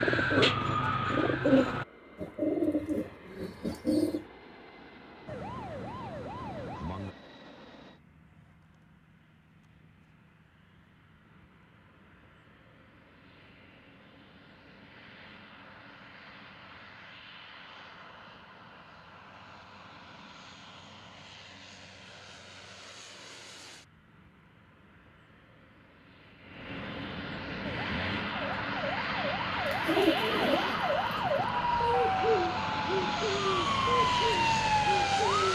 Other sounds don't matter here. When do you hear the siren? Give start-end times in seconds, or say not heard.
5.2-7.2, 27.6-35.4.